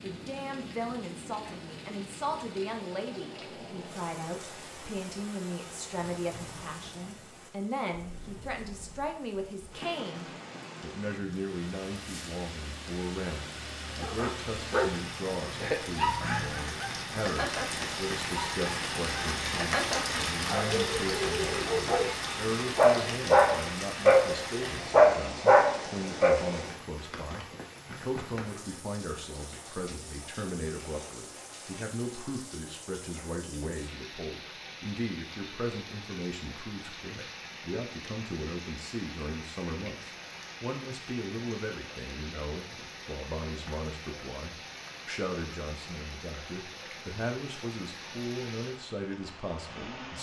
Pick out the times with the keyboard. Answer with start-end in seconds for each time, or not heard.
not heard.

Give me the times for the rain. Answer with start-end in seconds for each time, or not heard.
0.0-50.1.